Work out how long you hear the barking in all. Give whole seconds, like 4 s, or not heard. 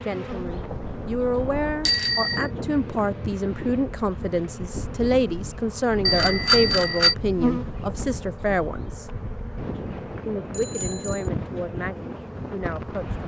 not heard.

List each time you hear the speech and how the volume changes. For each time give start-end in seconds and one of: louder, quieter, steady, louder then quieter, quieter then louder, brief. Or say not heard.
0.0-9.1 steady
10.2-13.2 brief.